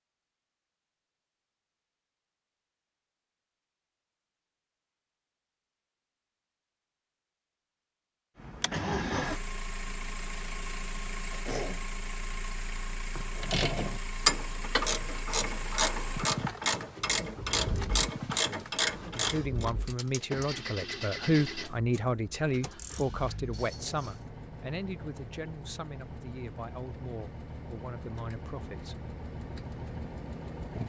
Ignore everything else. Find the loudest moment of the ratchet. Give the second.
14 s.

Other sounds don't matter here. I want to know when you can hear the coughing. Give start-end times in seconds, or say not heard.
11.3-11.8, 23.6-24.1.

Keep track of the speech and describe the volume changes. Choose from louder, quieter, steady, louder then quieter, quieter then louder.
quieter.